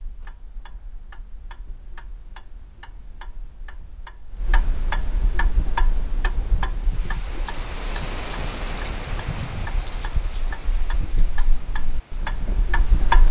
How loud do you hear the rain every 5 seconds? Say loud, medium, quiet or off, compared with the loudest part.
off, loud, medium.